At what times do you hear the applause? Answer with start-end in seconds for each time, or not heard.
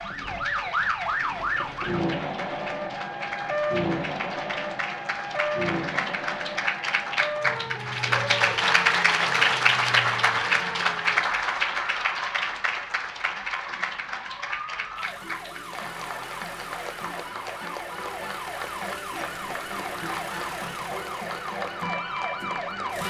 0.0-23.0.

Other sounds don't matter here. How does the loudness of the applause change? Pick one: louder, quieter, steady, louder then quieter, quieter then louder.
louder then quieter.